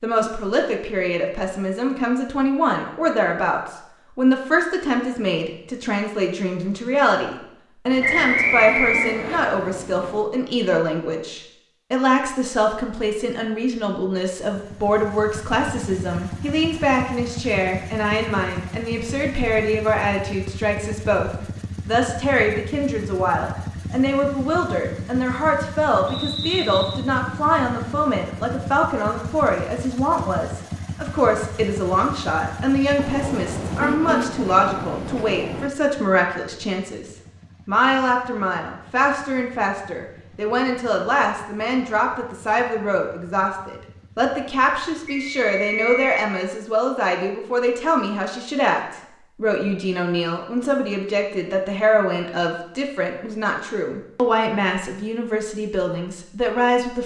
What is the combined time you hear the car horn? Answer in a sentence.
You can hear the car horn for 5 seconds altogether.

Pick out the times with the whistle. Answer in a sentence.
You can hear the whistle from 8.0 to 9.4 s, from 26.1 to 27.0 s and from 45.0 to 46.2 s.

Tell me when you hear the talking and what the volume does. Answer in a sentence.
The talking can be heard from 0.0 to 57.0 s, at a steady volume.